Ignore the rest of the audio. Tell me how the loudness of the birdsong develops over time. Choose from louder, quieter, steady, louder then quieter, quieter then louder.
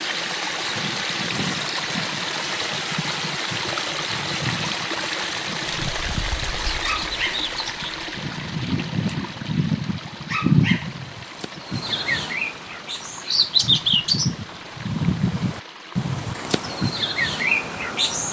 louder.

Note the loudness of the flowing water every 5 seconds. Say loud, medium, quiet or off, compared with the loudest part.
loud, loud, quiet, quiet.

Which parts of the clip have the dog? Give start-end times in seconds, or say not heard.
6.8-7.5, 10.2-10.9.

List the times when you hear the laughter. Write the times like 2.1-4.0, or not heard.
not heard.